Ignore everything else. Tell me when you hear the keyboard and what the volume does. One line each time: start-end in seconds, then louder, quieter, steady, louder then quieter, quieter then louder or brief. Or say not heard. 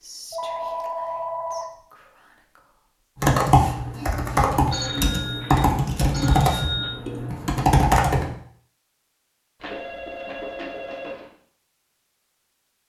3.2-8.3 steady.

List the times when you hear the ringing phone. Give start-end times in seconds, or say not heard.
0.3-1.8, 4.7-7.0, 9.6-11.3.